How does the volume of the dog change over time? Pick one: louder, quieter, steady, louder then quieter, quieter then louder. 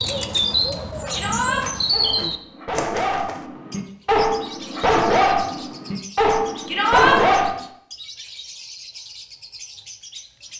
louder.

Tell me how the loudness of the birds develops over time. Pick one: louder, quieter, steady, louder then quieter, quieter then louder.
quieter.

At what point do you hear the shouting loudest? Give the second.
7 s.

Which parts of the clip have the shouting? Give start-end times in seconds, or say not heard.
1.1-1.6, 6.7-7.2.